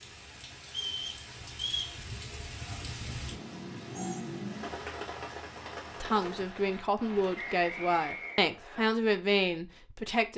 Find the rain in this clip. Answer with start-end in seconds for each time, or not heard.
0.0-8.4.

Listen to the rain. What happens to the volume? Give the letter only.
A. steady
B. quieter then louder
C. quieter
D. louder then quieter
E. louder
D.